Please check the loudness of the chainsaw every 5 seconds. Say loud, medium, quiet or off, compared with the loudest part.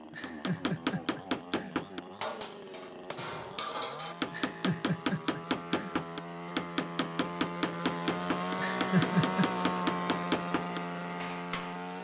medium, loud, loud.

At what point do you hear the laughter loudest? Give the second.
9 s.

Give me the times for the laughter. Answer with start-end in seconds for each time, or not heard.
0.1-1.9, 4.3-6.0, 8.6-9.4.